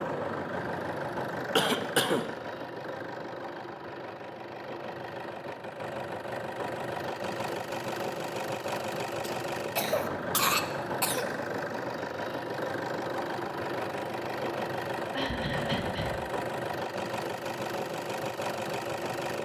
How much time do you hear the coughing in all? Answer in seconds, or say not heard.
4 s.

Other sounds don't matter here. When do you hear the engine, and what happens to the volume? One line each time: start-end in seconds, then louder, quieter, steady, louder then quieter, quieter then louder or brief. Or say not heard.
0.0-19.4 steady.